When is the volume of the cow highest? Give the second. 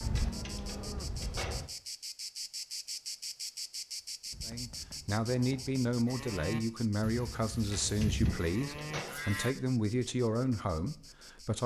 8 s.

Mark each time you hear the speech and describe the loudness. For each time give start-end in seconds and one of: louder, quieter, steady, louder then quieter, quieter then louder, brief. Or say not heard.
4.5-11.6 steady.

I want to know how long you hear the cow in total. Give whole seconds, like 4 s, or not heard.
5 s.